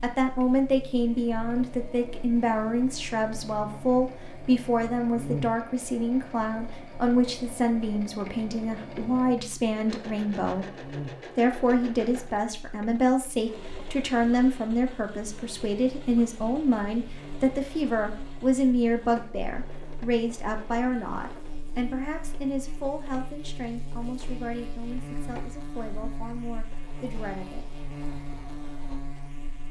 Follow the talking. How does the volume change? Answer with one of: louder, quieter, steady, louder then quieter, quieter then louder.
quieter.